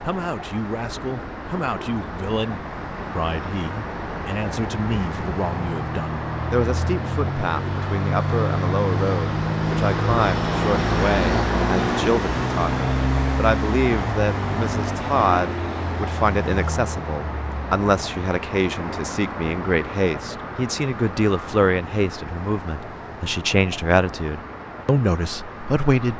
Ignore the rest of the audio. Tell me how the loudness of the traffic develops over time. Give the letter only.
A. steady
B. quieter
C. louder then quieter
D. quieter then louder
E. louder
C.